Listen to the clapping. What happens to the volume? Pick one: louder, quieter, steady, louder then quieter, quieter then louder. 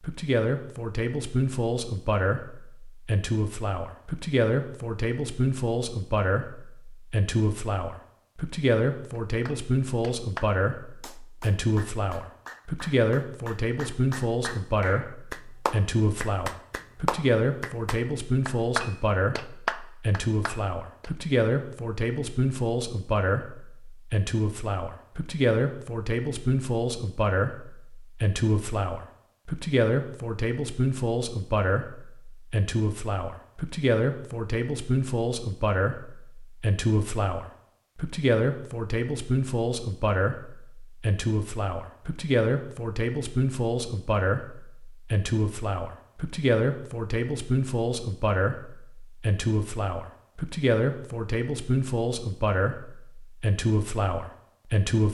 louder.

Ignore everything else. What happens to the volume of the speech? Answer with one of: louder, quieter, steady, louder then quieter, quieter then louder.
steady.